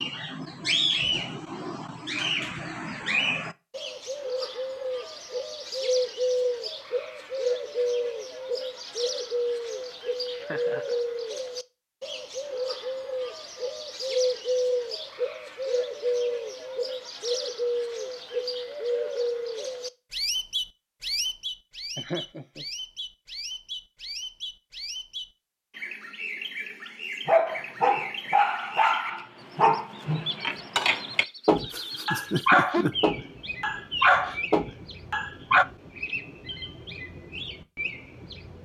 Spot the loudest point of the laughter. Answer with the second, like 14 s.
32 s.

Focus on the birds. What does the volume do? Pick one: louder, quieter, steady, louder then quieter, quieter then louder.
quieter.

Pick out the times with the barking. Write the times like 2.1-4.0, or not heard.
27.2-35.6.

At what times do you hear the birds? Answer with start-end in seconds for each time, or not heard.
0.0-38.6.